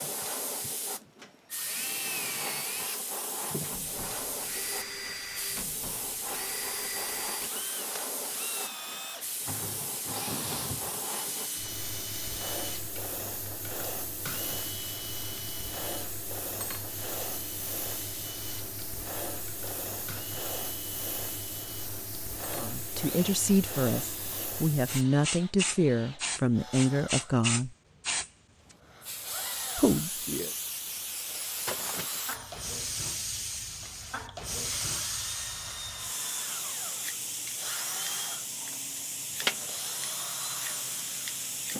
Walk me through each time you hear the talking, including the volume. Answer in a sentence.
You can hear the talking from 22.5 to 27.8 s, at a steady volume; and briefly from 29.8 to 30.5 s.